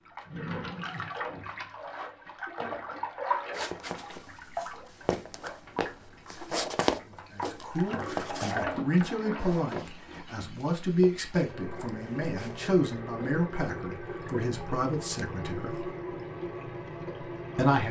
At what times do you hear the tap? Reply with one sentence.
You can hear the tap from 0.0 to 17.8 s.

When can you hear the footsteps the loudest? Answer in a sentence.
The loudest moment of the footsteps is at 7 seconds.